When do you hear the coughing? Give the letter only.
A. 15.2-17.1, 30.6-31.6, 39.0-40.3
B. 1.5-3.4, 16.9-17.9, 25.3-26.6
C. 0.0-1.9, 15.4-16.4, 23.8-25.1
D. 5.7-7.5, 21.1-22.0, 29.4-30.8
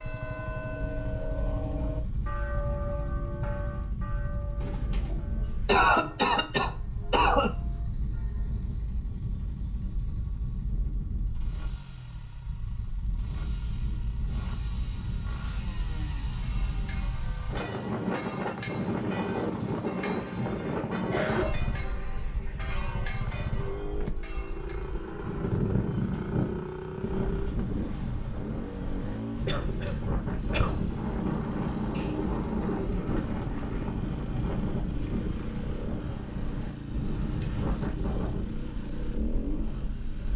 D.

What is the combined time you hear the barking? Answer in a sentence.
The barking can't be heard in this clip.